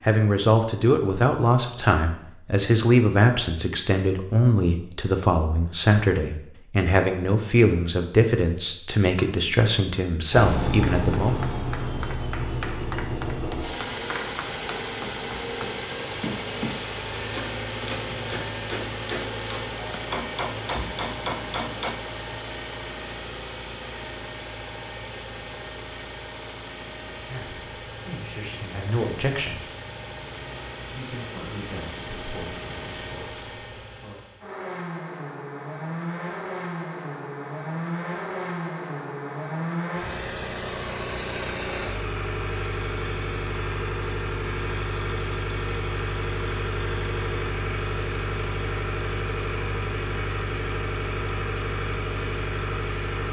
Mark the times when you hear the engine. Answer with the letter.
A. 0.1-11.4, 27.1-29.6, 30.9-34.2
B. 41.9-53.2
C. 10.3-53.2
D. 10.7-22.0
C.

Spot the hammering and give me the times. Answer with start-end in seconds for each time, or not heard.
10.7-22.0.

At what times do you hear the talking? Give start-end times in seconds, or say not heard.
0.1-11.4, 27.1-29.6, 30.9-34.2.